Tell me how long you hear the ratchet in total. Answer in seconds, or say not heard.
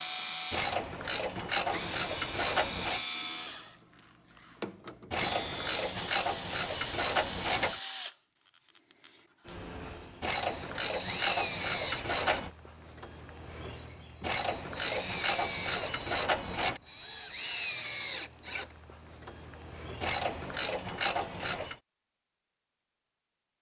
12 s.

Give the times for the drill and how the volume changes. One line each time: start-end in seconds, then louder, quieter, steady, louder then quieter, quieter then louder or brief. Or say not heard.
0.0-20.6 steady.